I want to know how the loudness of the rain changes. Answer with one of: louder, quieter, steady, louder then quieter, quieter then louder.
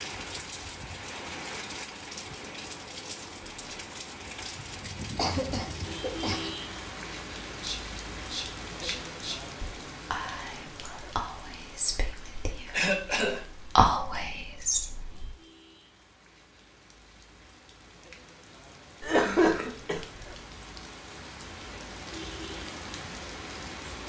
quieter then louder.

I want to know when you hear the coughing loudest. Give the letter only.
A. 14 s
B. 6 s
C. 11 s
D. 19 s
D.